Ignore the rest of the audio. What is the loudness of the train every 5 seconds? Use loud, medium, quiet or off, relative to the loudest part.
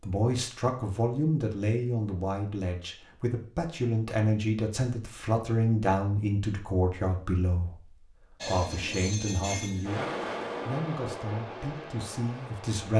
off, loud, loud.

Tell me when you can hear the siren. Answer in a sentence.
You can't hear the siren here.